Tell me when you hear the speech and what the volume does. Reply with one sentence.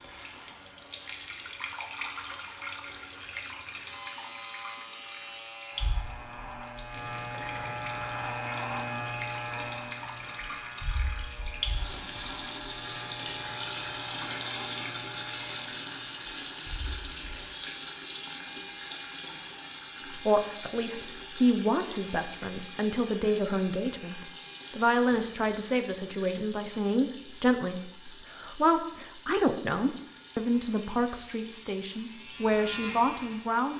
You can hear the speech from 20.1 to 33.7 s, at a steady volume.